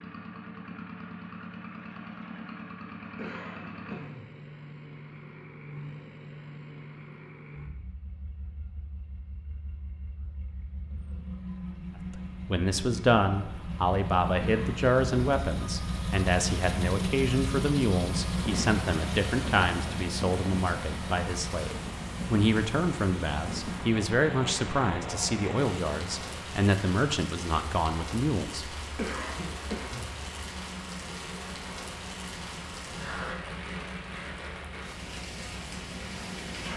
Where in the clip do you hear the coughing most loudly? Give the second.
29 s.